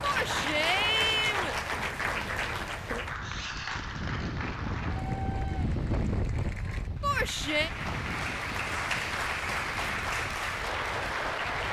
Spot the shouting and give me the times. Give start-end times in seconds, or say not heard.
0.0-1.6, 7.0-7.7.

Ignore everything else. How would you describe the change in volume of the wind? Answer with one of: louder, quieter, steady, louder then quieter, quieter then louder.
louder then quieter.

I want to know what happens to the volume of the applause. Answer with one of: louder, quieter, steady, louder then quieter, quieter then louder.
quieter then louder.